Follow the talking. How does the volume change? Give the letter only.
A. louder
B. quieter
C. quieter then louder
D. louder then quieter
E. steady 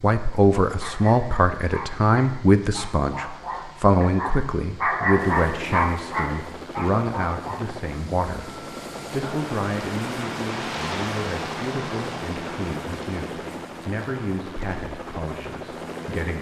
B.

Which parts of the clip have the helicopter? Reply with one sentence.
You can hear the helicopter from 5.1 to 16.3 s.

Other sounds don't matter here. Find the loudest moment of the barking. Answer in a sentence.
The volume of the barking peaks at 5 seconds.